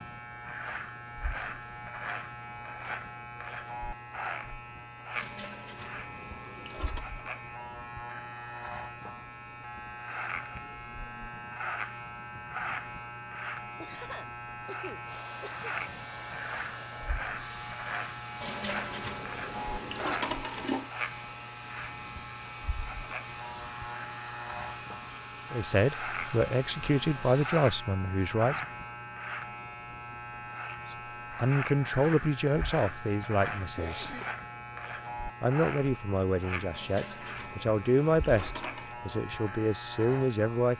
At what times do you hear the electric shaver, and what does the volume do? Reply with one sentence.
The electric shaver can be heard from 0.0 to 40.7 s, at a steady volume.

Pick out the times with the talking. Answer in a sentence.
The talking can be heard from 25.5 to 28.6 s, from 31.3 to 34.1 s and from 35.4 to 40.7 s.